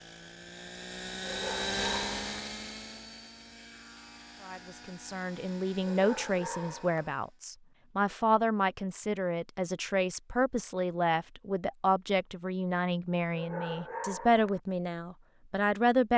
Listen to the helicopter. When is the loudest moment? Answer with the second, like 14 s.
2 s.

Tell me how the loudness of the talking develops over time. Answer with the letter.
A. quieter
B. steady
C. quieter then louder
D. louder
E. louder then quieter
B.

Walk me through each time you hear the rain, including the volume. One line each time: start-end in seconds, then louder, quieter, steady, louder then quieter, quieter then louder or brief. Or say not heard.
not heard.